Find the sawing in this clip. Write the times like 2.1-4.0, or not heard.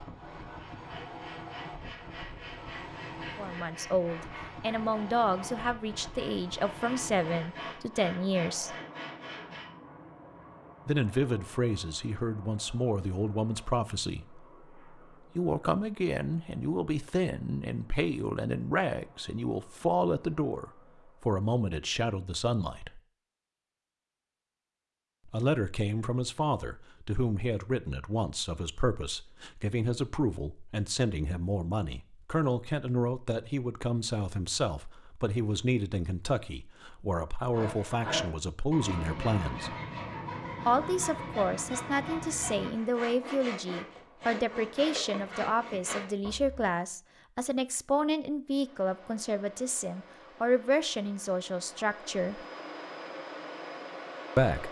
0.5-9.7, 37.5-46.7.